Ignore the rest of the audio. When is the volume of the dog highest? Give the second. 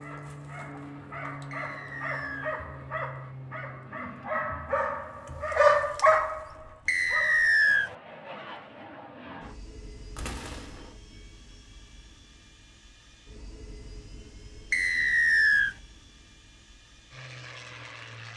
6 s.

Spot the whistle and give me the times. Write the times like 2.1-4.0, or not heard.
1.5-2.5, 6.8-7.9, 14.7-15.8.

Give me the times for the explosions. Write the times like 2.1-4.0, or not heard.
10.2-10.9.